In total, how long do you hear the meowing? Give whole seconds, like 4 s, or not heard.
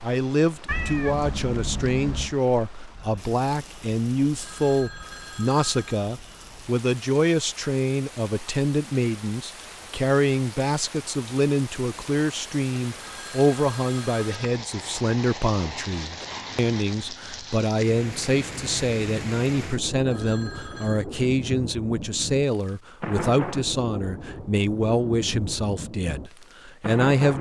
2 s.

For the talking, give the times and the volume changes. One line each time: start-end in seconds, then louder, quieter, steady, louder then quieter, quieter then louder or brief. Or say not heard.
0.0-27.3 steady.